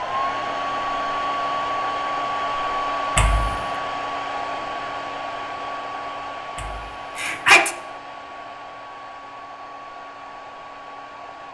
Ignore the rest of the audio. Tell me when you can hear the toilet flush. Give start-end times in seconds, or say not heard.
not heard.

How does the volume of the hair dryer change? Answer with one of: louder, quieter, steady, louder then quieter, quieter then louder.
quieter.